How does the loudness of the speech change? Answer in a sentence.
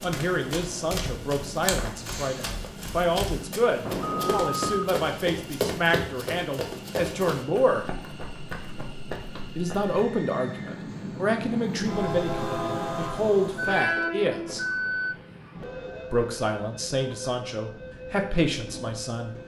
The volume of the speech stays about the same.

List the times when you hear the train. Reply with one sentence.
You can hear the train from 0.0 to 19.4 s.